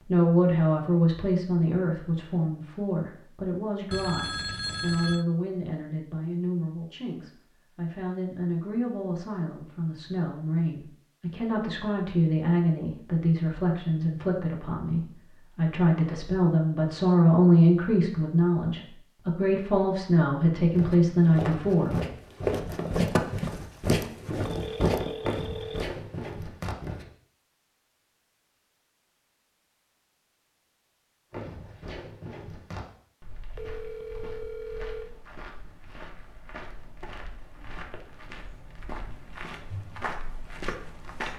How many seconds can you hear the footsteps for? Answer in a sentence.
You can hear the footsteps for 16 seconds altogether.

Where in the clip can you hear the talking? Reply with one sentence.
The talking can be heard from 0.0 to 21.9 s.